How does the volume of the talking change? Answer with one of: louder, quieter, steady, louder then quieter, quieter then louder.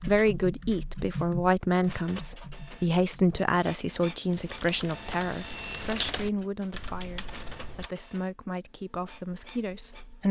quieter.